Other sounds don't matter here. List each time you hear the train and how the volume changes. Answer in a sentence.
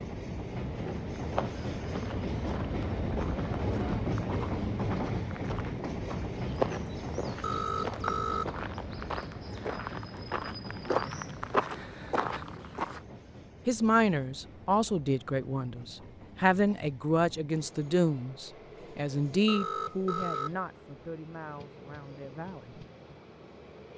You can hear the train from 0.0 to 23.9 s, getting quieter.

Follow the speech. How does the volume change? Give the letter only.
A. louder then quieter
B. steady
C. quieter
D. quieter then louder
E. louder
C.